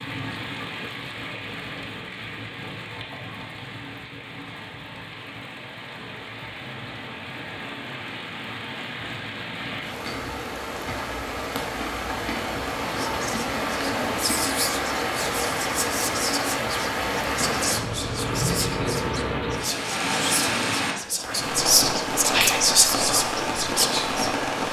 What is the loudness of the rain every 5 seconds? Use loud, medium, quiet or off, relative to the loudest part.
medium, medium, loud, loud, loud.